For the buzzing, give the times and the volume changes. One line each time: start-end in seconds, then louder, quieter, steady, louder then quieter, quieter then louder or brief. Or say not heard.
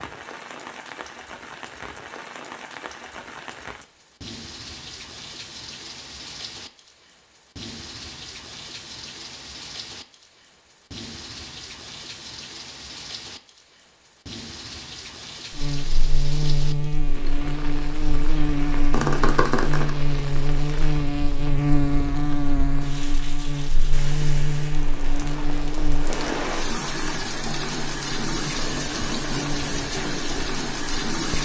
15.6-31.3 quieter.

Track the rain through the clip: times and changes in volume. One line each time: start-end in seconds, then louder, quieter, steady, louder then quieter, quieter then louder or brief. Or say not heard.
0.0-31.3 louder.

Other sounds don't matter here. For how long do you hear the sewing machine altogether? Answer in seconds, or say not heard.
not heard.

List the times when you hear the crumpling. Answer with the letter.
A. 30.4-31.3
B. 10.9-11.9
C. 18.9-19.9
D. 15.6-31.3
C.